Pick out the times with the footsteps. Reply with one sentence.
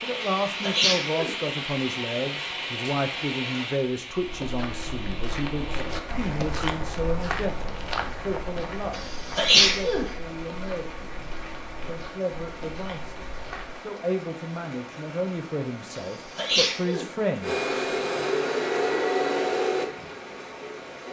The footsteps can be heard from 4.1 to 13.8 s.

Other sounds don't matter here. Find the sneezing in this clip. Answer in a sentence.
The sneezing can be heard from 0.2 to 1.3 s, from 8.9 to 10.1 s and from 15.9 to 17.1 s.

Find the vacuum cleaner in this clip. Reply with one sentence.
You can hear the vacuum cleaner from 17.4 to 21.0 s.